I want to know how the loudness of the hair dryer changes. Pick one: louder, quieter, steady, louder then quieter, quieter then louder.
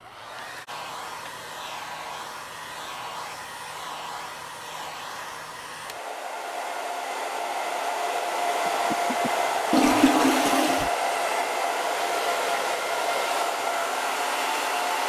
louder.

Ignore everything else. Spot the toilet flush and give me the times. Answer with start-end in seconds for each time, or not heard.
9.7-10.9.